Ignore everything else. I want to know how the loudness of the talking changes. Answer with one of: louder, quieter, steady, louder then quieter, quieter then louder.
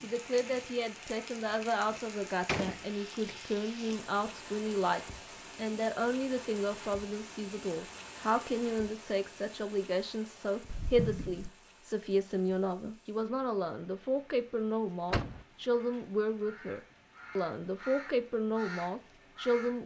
steady.